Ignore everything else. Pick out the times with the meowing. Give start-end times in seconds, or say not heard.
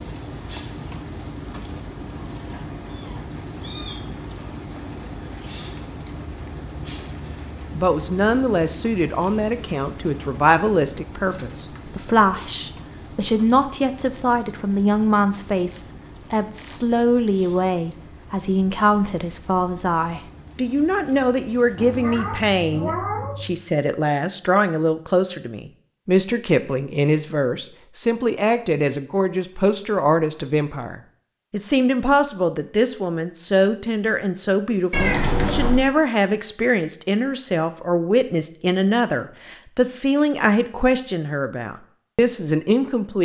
2.3-4.0, 21.8-23.6, 34.9-35.9.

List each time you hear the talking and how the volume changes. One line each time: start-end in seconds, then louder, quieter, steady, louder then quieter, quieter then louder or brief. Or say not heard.
7.8-43.2 steady.